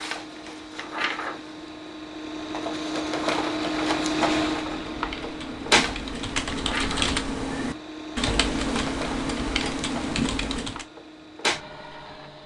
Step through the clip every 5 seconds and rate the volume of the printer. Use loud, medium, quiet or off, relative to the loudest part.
loud, loud, medium.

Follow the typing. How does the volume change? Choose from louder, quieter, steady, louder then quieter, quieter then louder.
louder.